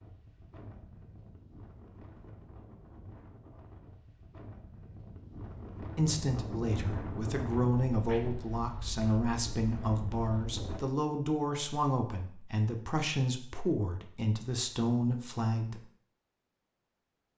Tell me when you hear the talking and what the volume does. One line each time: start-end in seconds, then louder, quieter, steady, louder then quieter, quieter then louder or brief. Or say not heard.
6.0-15.8 steady.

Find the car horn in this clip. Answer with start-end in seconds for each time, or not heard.
not heard.